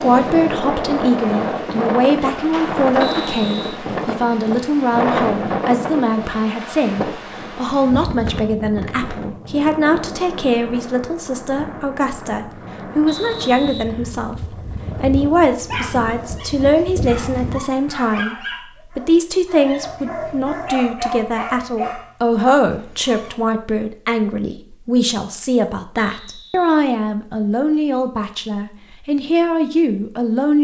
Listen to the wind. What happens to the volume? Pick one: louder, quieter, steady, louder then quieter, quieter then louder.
quieter.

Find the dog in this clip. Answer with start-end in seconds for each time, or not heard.
15.6-23.4.